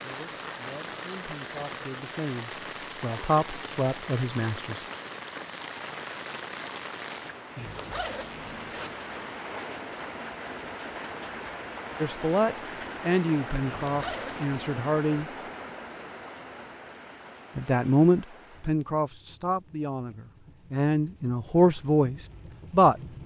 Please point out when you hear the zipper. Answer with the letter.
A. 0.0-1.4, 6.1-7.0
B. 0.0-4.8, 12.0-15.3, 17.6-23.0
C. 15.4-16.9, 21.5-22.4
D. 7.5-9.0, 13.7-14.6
D.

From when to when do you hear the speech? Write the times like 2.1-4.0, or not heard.
0.0-4.8, 12.0-15.3, 17.6-23.0.